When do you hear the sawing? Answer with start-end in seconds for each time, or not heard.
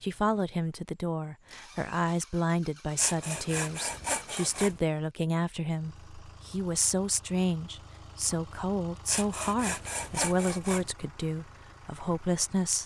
3.0-4.8, 9.1-10.9.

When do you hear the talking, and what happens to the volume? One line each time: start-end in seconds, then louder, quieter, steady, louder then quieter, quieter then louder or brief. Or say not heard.
0.0-12.8 steady.